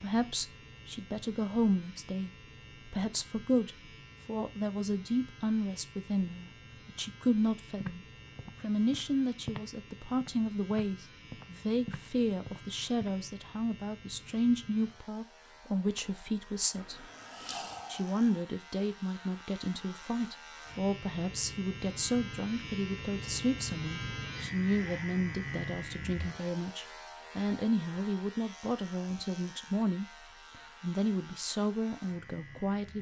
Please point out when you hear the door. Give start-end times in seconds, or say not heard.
not heard.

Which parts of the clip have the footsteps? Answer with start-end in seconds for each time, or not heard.
7.8-13.2.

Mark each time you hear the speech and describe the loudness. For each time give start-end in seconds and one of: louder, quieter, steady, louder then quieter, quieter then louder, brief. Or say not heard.
0.0-17.1 steady
17.9-30.1 steady
30.8-32.9 brief.